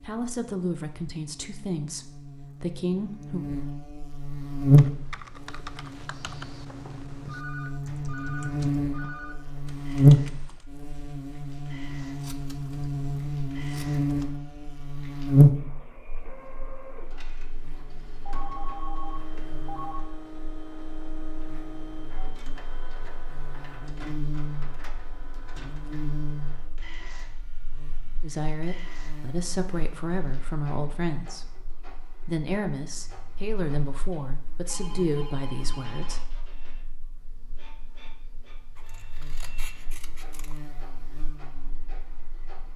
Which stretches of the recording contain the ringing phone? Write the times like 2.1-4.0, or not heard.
7.2-9.3, 18.2-20.1, 34.6-36.3.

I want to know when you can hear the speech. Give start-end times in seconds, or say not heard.
0.0-3.5, 28.2-31.5, 32.2-36.2.